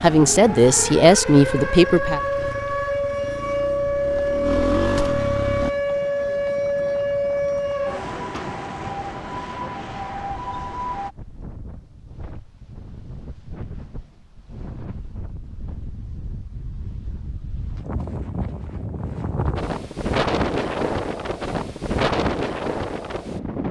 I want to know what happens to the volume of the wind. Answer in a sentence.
The loudness of the wind goes up.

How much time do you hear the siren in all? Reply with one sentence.
You can hear the siren for 11 seconds altogether.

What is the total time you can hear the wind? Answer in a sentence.
You can hear the wind for 18 seconds altogether.